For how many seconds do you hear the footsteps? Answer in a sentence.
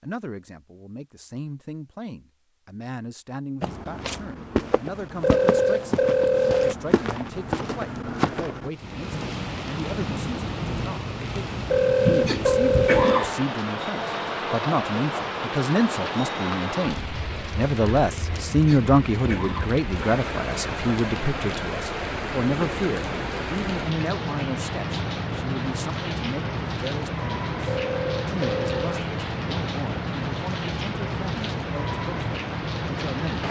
The footsteps can be heard for 5 seconds in total.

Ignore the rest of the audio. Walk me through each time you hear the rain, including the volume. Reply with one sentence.
The rain can be heard from 8.7 to 33.4 s, at a steady volume.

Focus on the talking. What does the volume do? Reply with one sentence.
The loudness of the talking goes up, then down.